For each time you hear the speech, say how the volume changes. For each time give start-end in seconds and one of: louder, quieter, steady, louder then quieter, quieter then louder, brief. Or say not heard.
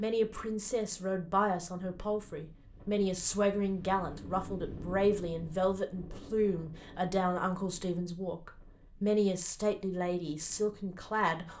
0.0-11.5 steady.